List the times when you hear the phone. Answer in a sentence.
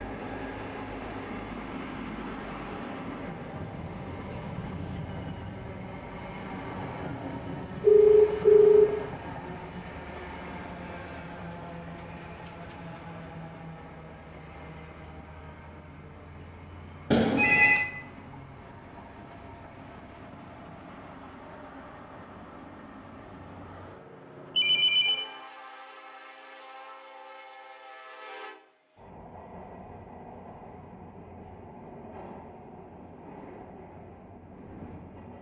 The phone can be heard from 7.8 to 8.9 s, from 17.1 to 17.9 s and from 24.6 to 25.2 s.